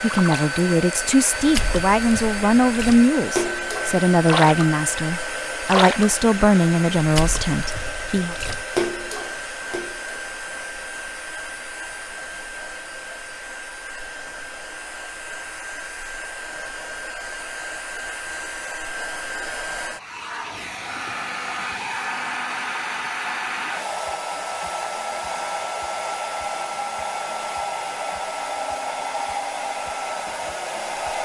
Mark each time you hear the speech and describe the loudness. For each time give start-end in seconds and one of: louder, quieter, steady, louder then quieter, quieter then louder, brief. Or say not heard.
0.0-8.3 steady.